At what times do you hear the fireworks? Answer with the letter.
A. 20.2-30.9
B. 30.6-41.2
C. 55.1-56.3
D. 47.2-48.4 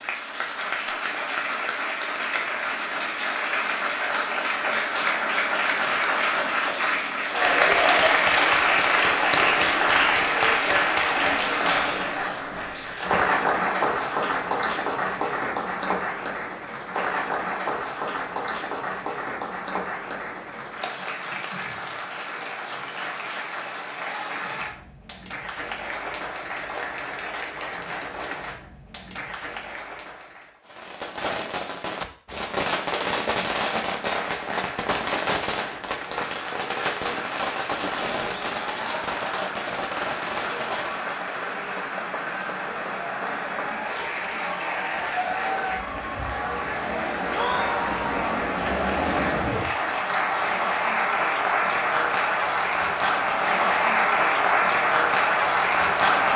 B.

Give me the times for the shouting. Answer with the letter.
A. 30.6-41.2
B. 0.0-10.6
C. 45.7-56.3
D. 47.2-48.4
D.